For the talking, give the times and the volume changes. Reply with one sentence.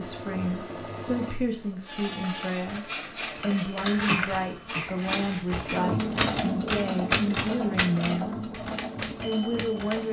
The talking can be heard from 0.0 to 8.5 s, at a steady volume; and briefly from 9.2 to 10.0 s.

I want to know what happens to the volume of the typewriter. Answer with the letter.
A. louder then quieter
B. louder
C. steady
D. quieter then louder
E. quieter
A.